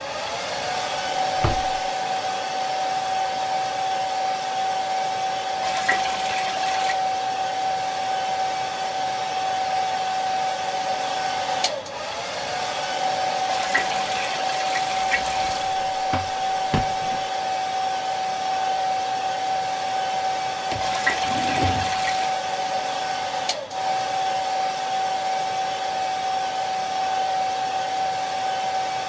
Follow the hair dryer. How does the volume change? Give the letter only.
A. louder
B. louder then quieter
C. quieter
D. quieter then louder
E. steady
E.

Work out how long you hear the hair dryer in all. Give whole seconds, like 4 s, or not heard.
29 s.